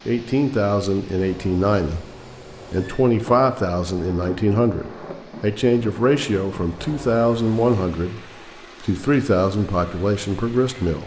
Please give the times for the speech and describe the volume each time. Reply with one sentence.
The speech can be heard briefly from 0.1 to 2.1 s; and from 2.7 to 11.0 s, at a steady volume.